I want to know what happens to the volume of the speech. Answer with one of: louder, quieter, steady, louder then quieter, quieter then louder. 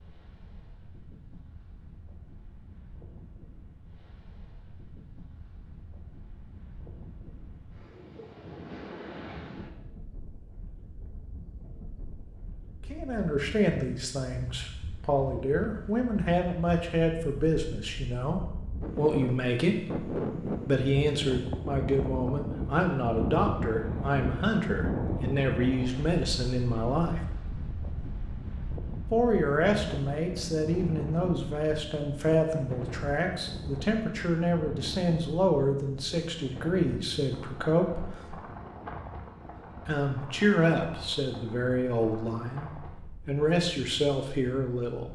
steady.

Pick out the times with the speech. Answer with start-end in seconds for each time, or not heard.
12.9-27.2, 29.1-38.4, 39.9-45.1.